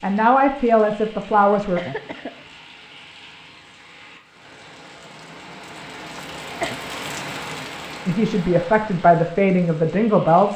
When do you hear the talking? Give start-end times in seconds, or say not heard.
0.0-1.8, 8.1-10.5.